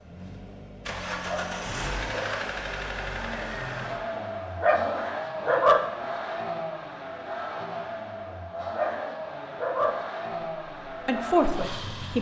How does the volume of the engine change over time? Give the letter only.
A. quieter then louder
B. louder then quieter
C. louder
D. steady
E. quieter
D.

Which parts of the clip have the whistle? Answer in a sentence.
You can't hear the whistle here.